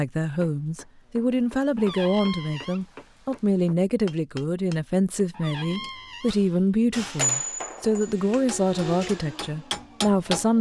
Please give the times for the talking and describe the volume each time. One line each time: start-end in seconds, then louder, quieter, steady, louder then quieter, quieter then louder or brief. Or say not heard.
0.0-10.5 steady.